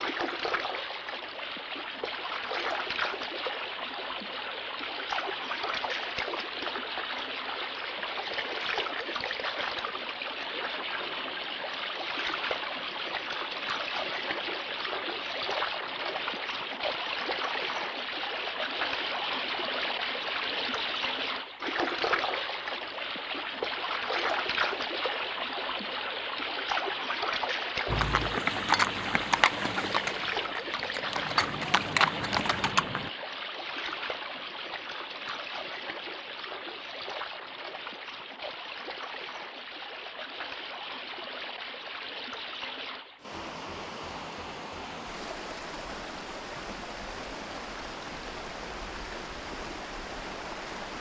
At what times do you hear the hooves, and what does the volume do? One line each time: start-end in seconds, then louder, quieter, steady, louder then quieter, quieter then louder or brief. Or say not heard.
27.9-33.1 quieter then louder.